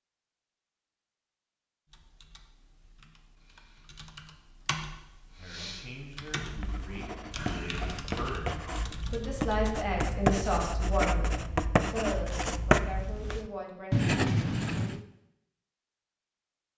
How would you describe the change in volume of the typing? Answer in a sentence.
The volume of the typing goes up.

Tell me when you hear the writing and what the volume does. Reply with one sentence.
The writing can be heard from 6.4 to 15.1 s, getting louder.